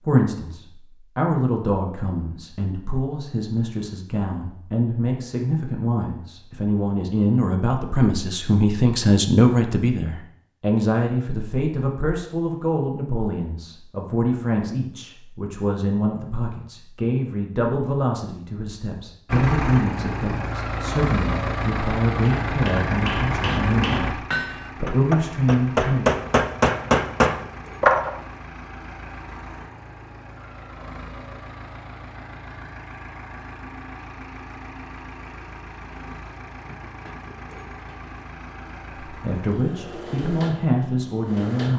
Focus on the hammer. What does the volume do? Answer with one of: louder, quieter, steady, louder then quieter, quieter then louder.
louder.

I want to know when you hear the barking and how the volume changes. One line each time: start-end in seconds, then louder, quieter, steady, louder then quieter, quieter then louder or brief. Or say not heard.
not heard.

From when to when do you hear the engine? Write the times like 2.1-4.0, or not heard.
19.2-41.7.